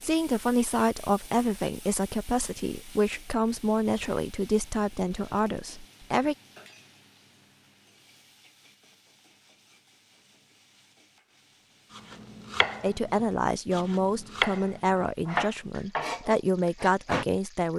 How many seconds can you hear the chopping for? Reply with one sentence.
You can hear the chopping for 5 seconds altogether.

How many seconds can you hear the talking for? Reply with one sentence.
The talking can be heard for 11 seconds in total.